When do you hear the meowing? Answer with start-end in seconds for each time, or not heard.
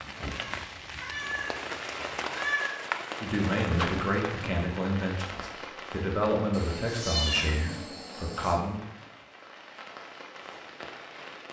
0.3-2.8, 6.5-8.6.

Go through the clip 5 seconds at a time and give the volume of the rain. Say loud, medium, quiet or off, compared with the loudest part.
loud, medium, medium.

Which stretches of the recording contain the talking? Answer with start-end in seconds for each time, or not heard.
3.2-8.8.